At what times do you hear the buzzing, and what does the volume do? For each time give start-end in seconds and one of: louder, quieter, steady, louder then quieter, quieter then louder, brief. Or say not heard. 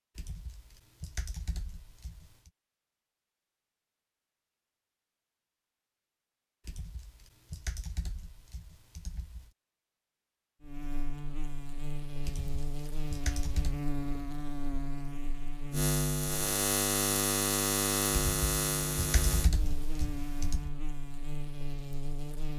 10.6-22.5 louder then quieter.